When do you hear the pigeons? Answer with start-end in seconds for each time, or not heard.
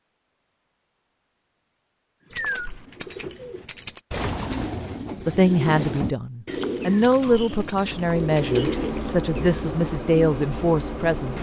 2.3-9.7.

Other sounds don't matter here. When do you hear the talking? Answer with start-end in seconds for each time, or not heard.
5.2-11.3.